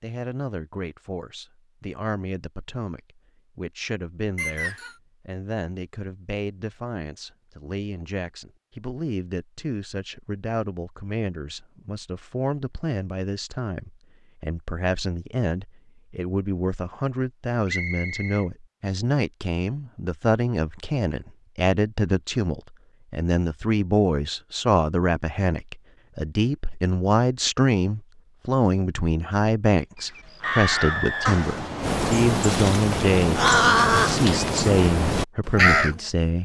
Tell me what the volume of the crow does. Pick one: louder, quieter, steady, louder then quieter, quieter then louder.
louder then quieter.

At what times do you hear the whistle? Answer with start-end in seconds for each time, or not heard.
4.3-5.0, 17.6-18.4, 30.4-31.9.